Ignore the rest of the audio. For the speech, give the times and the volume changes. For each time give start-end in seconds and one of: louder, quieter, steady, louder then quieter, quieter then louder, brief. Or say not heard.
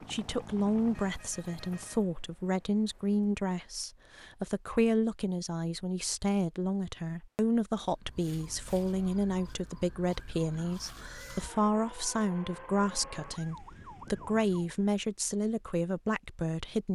0.0-16.8 steady.